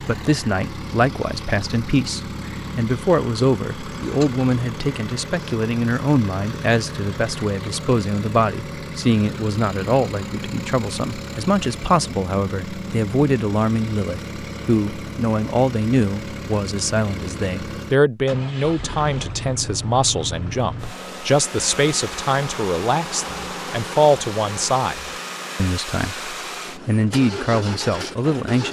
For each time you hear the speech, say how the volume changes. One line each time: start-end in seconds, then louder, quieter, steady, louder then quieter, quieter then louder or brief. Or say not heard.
0.0-28.6 steady.